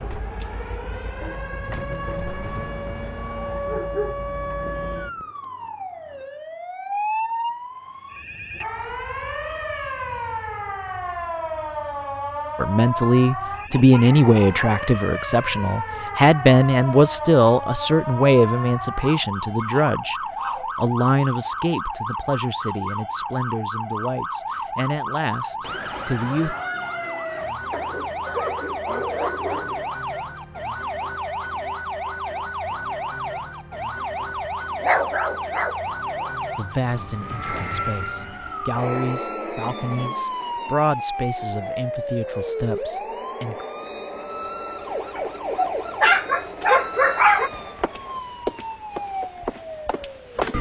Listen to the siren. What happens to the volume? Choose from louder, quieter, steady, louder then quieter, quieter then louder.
steady.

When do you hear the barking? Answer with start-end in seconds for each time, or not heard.
3.6-5.2, 13.7-14.9, 19.0-20.7, 27.7-29.9, 34.8-35.8, 45.1-47.5.